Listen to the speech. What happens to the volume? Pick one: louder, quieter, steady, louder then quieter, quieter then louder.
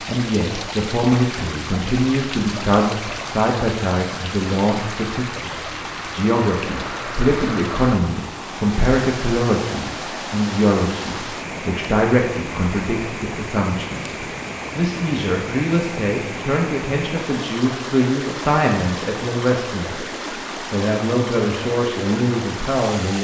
steady.